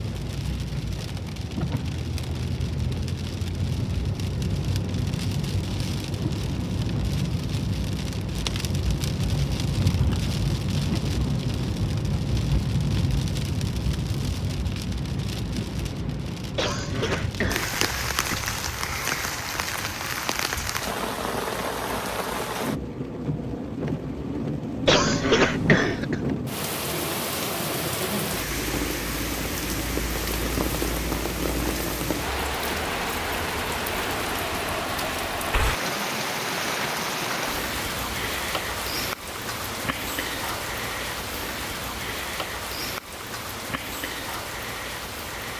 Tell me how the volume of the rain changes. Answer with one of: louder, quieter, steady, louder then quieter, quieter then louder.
steady.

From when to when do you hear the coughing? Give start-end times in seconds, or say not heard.
16.6-18.6, 24.9-26.2.